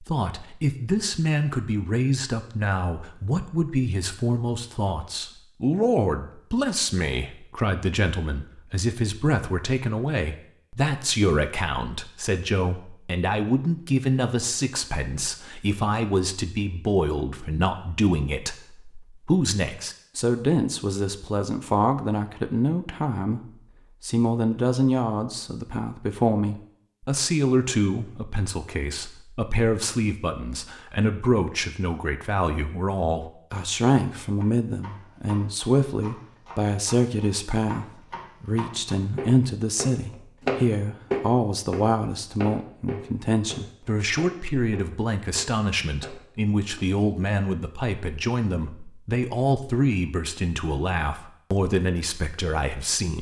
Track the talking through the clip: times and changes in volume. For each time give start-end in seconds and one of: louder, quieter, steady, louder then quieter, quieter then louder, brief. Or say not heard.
0.0-23.4 steady
24.0-53.1 steady.